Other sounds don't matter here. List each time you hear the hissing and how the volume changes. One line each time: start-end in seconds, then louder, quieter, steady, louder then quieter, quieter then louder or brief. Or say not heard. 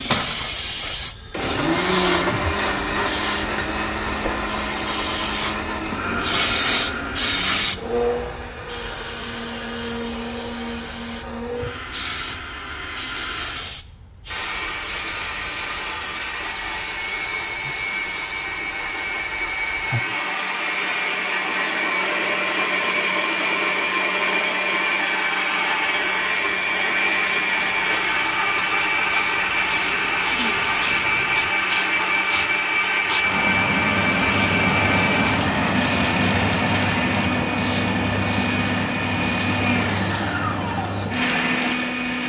0.0-42.0 quieter then louder.